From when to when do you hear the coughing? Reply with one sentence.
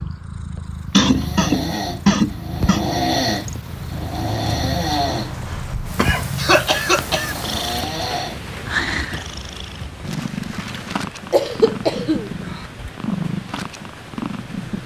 The coughing can be heard from 0.9 to 2.9 s, from 5.5 to 7.3 s and from 11.3 to 12.6 s.